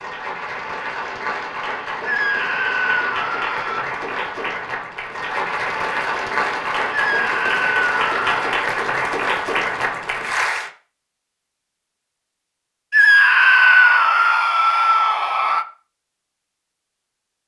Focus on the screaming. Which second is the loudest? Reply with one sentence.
The volume of the screaming peaks at 14 seconds.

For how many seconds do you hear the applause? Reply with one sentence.
You can hear the applause for 11 seconds altogether.